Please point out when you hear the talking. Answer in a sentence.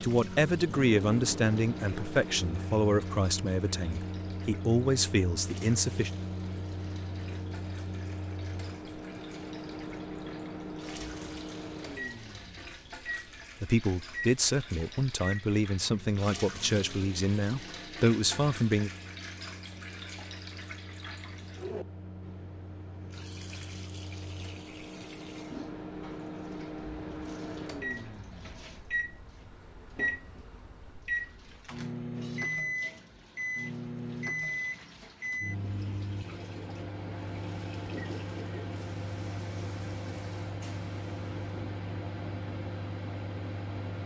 The talking can be heard from 0.0 to 6.1 s and from 13.6 to 18.9 s.